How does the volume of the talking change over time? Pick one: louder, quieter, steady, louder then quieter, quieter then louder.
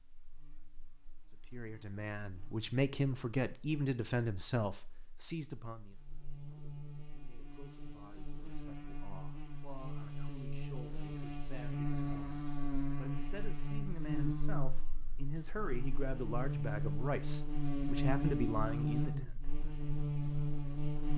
quieter then louder.